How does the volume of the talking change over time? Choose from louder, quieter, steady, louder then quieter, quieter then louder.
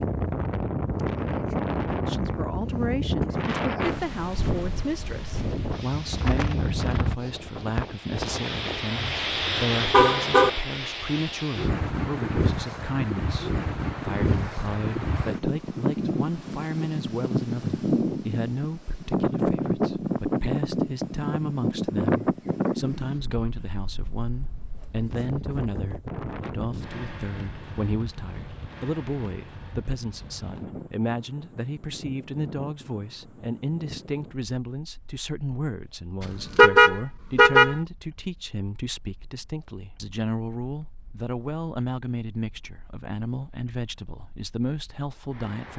steady.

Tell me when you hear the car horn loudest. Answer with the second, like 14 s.
37 s.